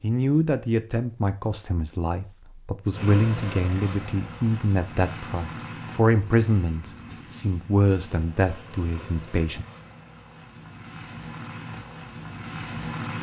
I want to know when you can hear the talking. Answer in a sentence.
You can hear the talking from 0.0 to 9.7 s.